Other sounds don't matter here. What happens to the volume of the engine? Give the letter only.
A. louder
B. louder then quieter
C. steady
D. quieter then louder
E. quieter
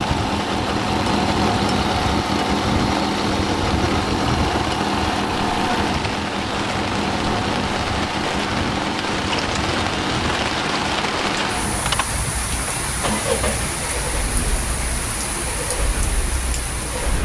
E.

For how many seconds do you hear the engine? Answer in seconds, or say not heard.
17 s.